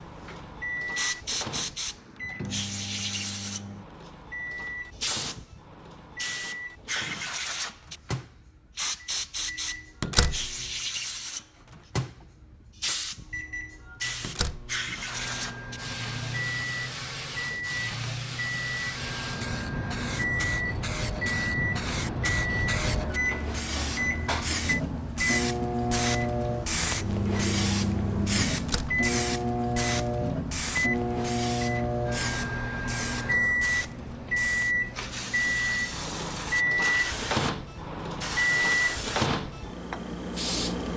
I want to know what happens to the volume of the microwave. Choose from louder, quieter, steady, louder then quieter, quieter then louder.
louder.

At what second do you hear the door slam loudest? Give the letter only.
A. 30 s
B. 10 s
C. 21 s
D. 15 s
B.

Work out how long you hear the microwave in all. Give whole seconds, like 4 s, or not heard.
41 s.